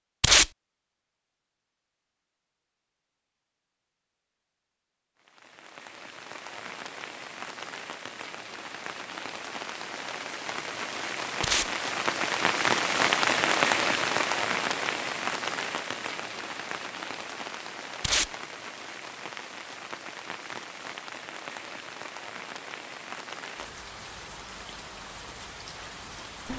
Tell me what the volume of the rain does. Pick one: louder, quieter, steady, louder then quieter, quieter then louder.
louder then quieter.